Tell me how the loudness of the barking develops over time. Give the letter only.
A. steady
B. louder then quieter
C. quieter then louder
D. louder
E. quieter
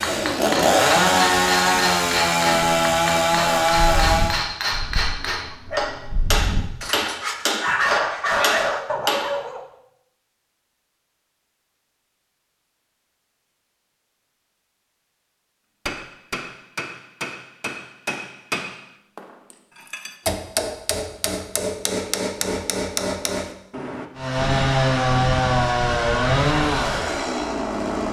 D.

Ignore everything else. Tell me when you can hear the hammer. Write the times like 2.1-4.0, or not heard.
0.0-9.4, 15.8-24.1.